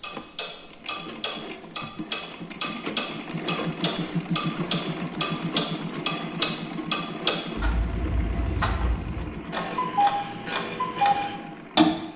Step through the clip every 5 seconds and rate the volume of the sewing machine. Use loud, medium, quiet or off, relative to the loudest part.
loud, loud, medium.